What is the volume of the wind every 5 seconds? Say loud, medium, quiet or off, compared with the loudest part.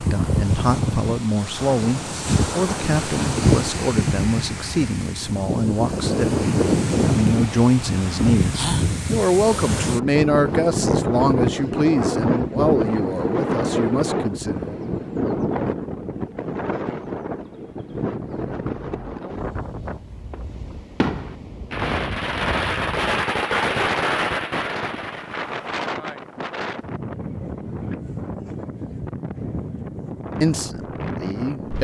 loud, loud, loud, medium, medium, medium, medium.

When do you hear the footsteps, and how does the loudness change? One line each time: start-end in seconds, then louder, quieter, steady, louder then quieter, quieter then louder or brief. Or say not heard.
not heard.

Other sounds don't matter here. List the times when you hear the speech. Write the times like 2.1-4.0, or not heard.
0.0-14.8, 30.4-31.7.